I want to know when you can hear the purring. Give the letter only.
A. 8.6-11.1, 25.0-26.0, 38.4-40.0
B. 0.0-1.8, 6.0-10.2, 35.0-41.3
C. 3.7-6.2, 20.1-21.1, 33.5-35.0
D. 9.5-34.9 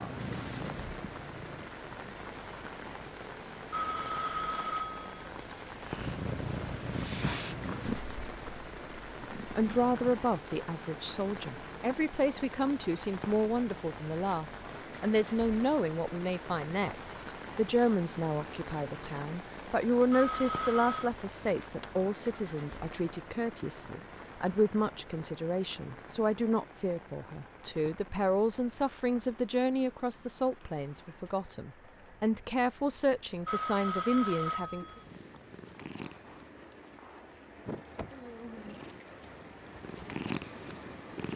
B.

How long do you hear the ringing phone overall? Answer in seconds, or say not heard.
5 s.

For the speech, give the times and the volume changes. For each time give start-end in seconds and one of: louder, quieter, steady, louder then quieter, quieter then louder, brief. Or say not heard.
9.5-34.9 steady.